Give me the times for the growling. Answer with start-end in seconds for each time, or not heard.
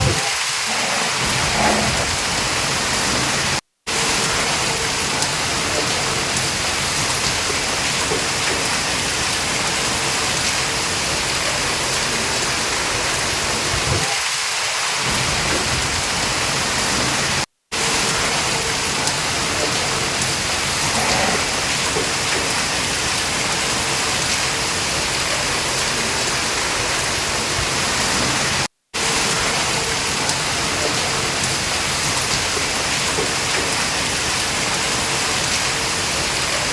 0.5-2.0, 20.8-21.6.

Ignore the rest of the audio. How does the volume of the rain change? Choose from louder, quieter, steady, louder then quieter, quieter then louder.
steady.